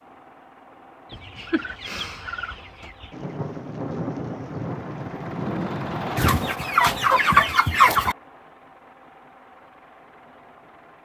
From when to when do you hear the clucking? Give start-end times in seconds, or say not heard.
1.1-3.1, 6.2-8.2.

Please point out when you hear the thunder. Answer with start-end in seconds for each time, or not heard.
3.1-6.5.